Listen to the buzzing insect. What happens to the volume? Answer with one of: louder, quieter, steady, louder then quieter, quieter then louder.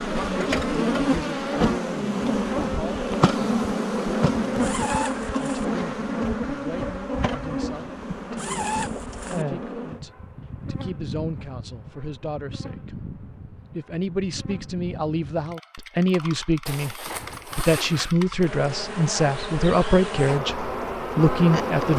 quieter then louder.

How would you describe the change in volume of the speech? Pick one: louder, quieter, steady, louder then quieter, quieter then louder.
louder.